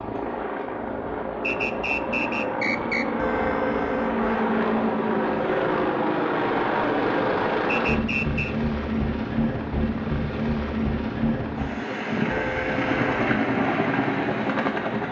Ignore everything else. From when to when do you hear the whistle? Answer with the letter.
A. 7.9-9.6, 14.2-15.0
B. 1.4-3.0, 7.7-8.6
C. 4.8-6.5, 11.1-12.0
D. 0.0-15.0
B.